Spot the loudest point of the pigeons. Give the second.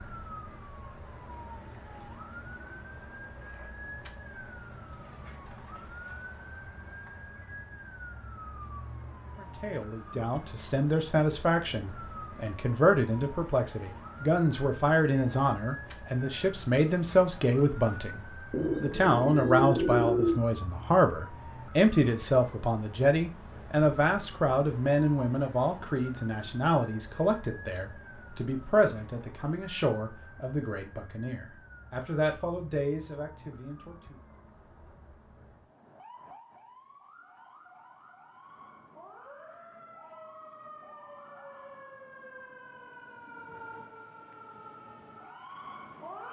20 s.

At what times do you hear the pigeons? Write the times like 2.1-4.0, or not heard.
18.5-20.4.